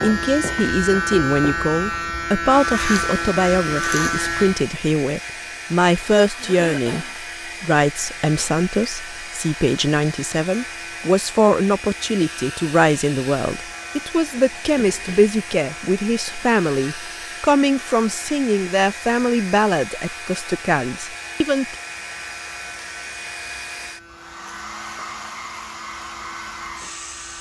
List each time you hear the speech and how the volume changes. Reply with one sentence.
The speech can be heard from 0.0 to 21.8 s, at a steady volume.